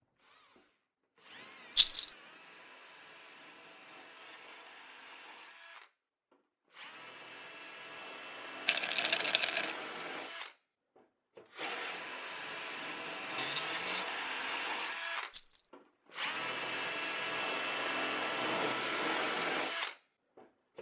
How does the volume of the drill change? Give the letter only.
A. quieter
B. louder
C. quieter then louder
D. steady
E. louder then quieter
B.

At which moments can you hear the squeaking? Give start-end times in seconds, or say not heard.
13.3-14.1.